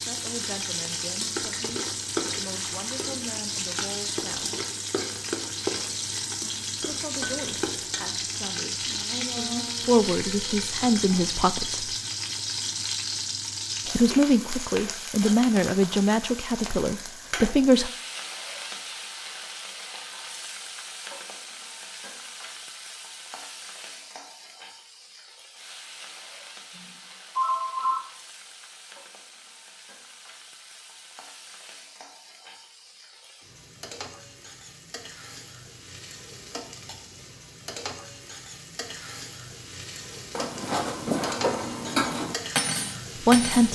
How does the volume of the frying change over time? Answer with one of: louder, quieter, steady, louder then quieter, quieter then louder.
quieter then louder.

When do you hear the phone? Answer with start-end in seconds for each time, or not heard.
10.1-10.7, 26.8-28.0.